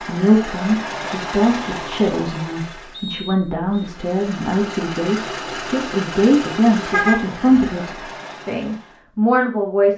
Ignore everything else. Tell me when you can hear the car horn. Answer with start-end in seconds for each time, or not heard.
6.9-7.8.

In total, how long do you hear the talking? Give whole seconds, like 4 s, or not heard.
10 s.